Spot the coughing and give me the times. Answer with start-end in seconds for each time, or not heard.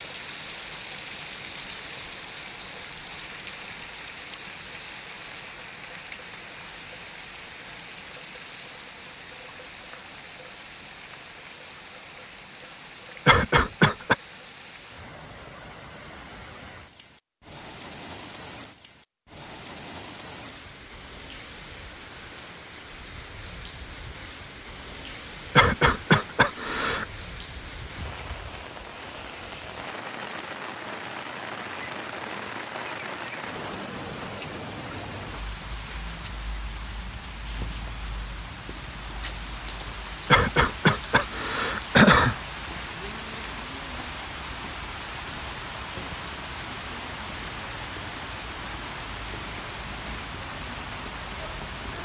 13.2-14.2, 25.5-27.1, 40.2-42.4.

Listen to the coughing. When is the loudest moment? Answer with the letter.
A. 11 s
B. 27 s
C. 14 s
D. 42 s
D.